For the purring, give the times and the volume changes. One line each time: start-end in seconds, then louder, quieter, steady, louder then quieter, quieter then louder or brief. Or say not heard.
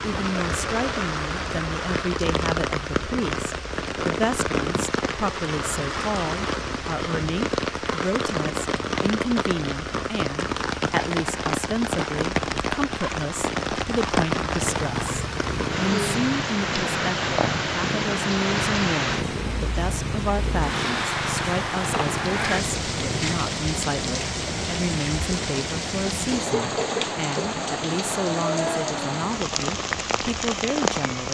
14.6-23.6 steady.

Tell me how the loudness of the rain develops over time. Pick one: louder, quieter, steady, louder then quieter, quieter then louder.
steady.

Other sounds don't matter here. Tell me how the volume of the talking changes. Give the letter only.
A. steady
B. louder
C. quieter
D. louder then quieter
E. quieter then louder
A.